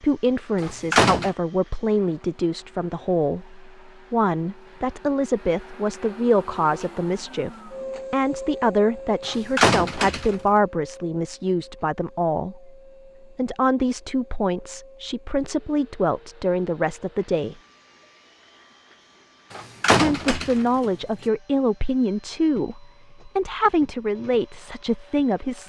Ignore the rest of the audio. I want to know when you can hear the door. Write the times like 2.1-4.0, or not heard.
0.6-1.3, 9.2-10.3, 19.5-20.6.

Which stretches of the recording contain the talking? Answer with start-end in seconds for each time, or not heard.
0.0-12.7, 13.3-17.6, 20.0-25.6.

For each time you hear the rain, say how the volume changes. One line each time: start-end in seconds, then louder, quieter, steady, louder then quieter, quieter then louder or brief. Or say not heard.
not heard.